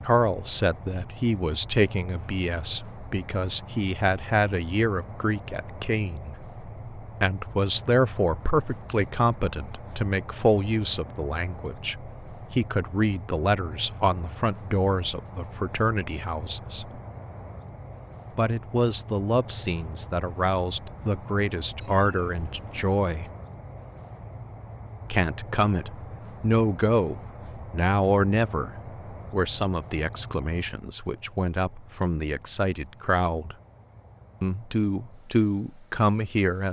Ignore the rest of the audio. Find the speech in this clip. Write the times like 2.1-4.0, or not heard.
0.0-16.9, 18.4-23.3, 25.1-33.5, 34.4-36.6.